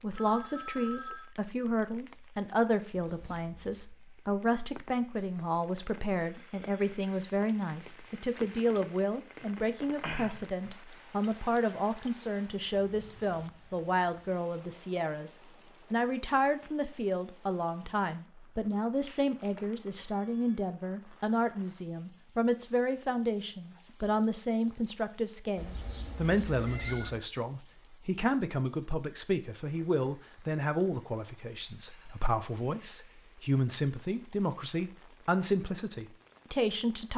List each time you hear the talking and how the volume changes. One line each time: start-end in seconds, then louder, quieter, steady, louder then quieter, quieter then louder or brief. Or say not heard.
0.0-37.1 steady.